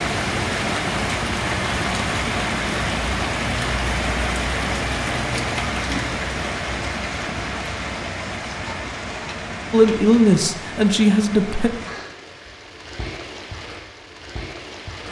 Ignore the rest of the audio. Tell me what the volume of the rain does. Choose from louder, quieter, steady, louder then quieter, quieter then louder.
quieter.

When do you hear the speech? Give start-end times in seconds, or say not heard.
9.7-11.7.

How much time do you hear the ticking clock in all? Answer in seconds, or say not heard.
not heard.